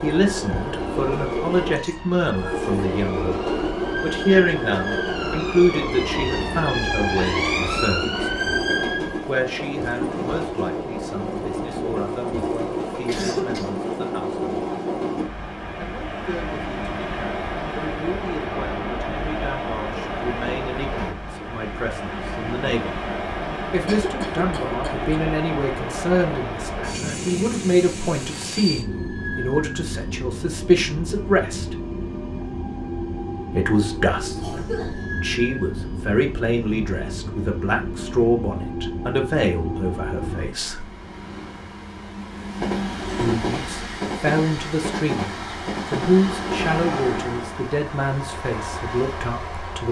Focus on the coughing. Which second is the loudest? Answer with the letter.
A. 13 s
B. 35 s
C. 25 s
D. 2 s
A.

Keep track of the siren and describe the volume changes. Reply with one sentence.
The volume of the siren goes up.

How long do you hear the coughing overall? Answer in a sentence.
You can hear the coughing for 3 seconds altogether.